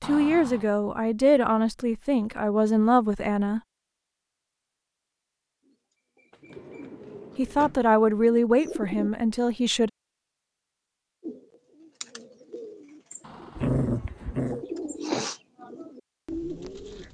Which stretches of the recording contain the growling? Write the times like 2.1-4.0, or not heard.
13.6-14.7.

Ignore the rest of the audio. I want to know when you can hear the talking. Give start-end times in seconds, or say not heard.
0.0-3.6, 7.3-9.9.